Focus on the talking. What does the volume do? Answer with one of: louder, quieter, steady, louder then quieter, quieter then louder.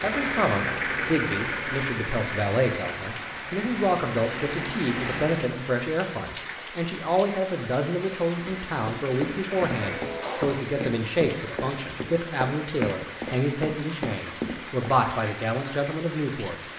steady.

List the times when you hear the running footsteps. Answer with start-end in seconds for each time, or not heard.
8.4-15.0.